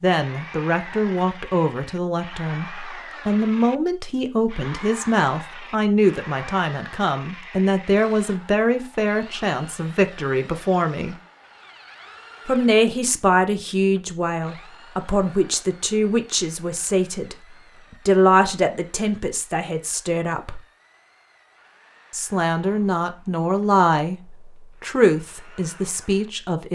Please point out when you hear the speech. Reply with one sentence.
You can hear the speech from 0.0 to 11.2 s, from 12.4 to 20.6 s and from 22.1 to 26.7 s.